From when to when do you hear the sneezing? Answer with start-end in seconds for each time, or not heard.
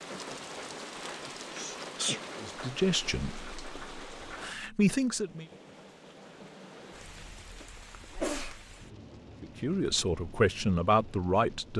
1.4-2.2, 8.0-8.6.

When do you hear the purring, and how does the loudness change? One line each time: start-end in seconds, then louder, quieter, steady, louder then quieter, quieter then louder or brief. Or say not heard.
not heard.